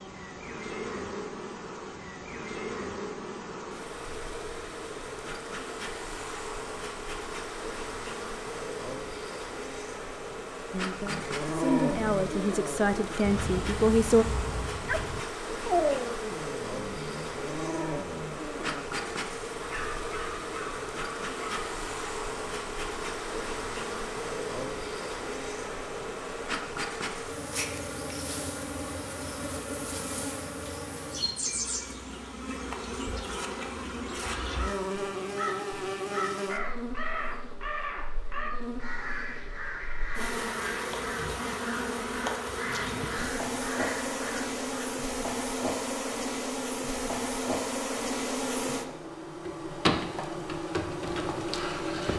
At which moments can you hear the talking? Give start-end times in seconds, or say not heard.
10.7-14.2.